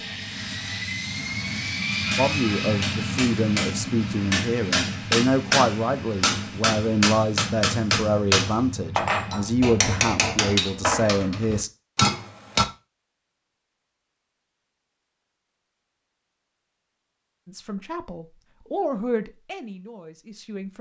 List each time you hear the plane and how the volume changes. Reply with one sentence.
The plane can be heard from 0.0 to 10.4 s, getting quieter.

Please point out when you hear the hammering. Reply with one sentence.
The hammering can be heard from 2.1 to 12.7 s.